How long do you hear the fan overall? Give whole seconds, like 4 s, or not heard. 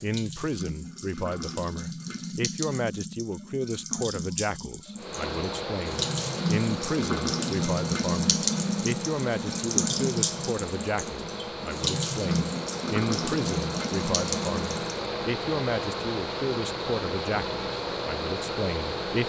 14 s.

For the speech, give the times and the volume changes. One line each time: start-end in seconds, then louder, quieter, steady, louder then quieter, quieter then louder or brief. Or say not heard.
0.0-19.2 steady.